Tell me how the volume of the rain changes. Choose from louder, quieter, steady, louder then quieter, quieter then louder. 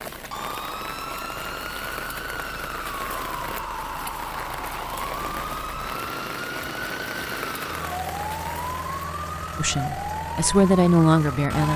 steady.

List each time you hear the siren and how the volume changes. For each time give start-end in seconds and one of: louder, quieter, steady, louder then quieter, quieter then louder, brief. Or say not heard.
0.1-11.7 steady.